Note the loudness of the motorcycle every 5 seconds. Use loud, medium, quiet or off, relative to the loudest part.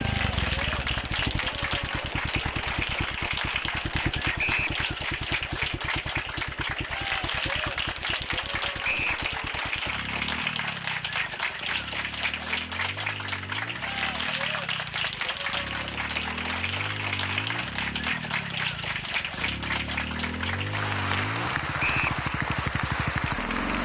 loud, medium, medium, medium, loud.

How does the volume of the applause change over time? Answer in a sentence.
The loudness of the applause stays about the same.